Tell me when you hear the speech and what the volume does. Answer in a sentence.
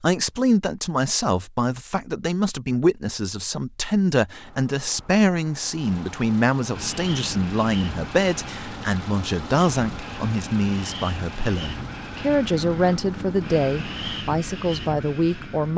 The speech can be heard from 0.0 to 15.7 s, at a steady volume.